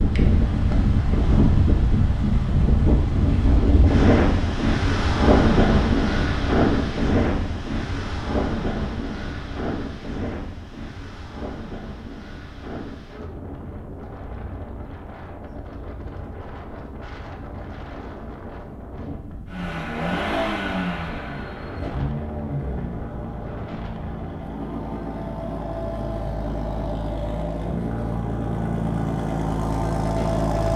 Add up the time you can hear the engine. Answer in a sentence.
The engine can be heard for 11 seconds in total.